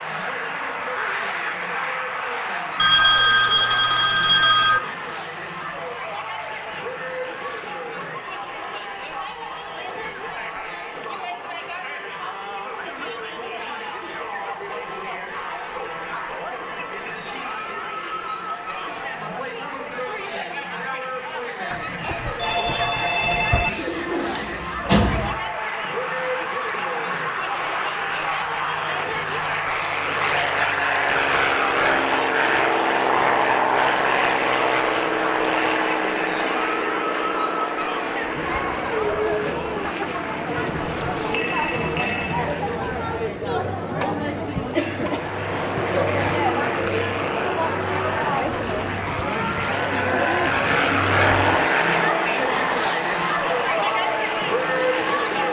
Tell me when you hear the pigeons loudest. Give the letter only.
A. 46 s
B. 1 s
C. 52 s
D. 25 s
D.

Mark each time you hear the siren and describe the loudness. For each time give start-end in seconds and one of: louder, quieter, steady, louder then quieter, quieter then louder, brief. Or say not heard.
not heard.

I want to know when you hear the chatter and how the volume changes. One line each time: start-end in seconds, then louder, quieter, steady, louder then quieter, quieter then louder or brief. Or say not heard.
0.0-55.4 louder.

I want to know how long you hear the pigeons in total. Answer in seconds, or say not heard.
2 s.